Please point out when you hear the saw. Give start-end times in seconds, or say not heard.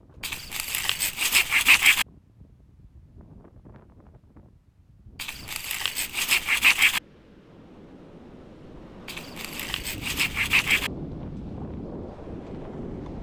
0.2-2.0, 5.2-7.0, 9.1-10.9.